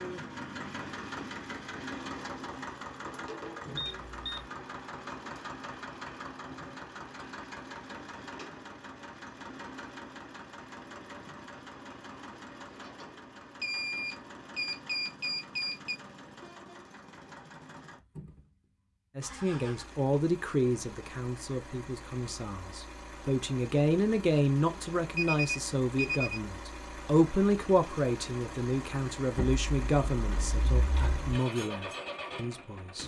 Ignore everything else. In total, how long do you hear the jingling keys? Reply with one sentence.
The jingling keys can be heard for 2 seconds in total.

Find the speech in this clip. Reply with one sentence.
You can hear the speech from 19.1 to 33.0 s.